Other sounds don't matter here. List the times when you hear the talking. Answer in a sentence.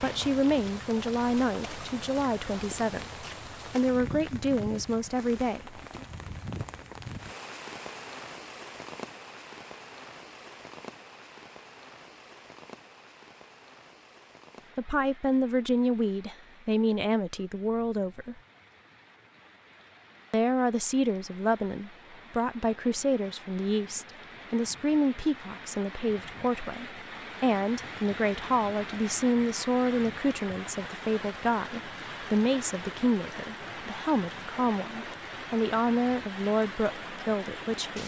You can hear the talking from 0.0 to 6.0 s, from 14.8 to 18.4 s and from 20.3 to 38.0 s.